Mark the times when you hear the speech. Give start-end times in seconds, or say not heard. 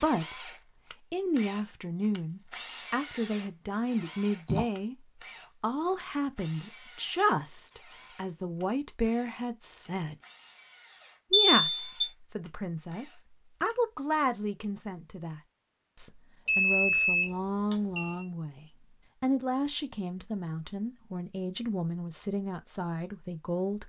0.0-0.5, 1.1-5.0, 5.6-10.2, 11.3-23.8.